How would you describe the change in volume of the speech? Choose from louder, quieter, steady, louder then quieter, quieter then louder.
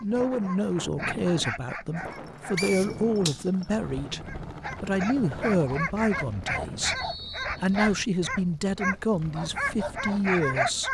steady.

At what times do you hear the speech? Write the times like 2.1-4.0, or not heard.
0.0-4.2, 4.8-10.8.